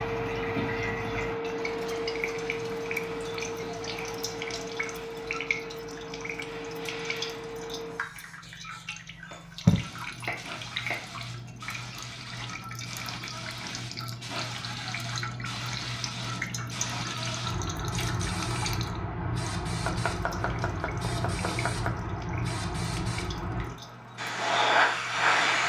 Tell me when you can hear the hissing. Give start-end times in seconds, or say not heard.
0.0-25.6.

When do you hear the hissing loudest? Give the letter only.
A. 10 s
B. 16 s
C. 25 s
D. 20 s
C.